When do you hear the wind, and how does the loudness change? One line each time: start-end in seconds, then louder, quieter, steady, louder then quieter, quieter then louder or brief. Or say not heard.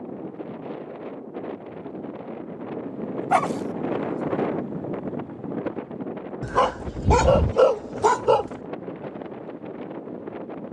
0.0-10.6 louder then quieter.